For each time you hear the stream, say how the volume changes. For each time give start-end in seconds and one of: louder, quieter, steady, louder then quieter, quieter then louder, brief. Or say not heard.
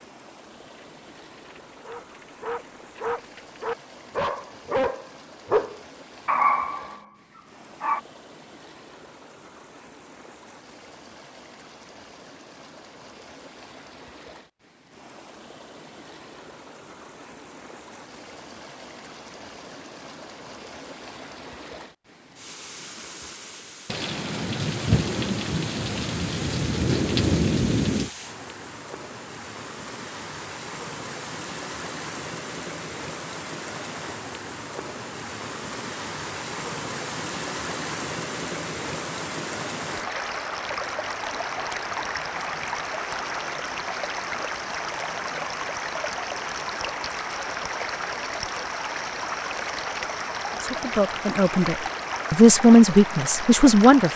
0.0-54.1 louder.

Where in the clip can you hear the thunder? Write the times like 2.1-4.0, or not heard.
23.9-28.1.